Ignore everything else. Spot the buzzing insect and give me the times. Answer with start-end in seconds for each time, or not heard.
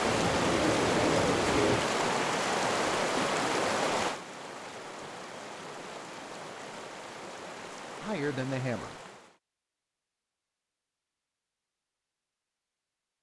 not heard.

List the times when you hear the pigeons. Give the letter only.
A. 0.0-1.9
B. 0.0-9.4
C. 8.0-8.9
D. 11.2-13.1
A.